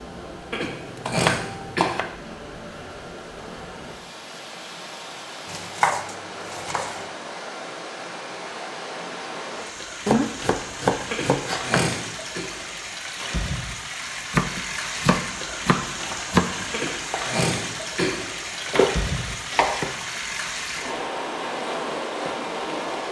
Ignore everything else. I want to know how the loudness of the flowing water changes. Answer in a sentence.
The volume of the flowing water goes up.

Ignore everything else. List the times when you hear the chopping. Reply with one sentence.
You can hear the chopping from 0.8 to 2.1 s, from 5.5 to 7.0 s, from 10.1 to 11.8 s, from 14.3 to 16.6 s and from 18.6 to 19.9 s.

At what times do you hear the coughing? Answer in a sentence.
The coughing can be heard from 0.5 to 1.9 s, from 11.1 to 12.4 s and from 16.7 to 18.1 s.